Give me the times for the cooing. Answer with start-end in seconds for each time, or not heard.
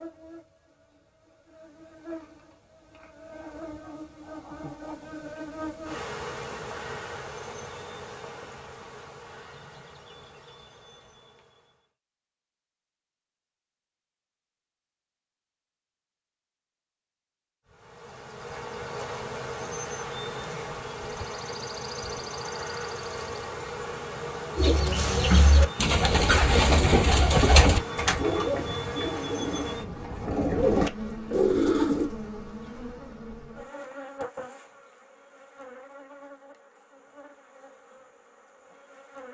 24.6-32.1.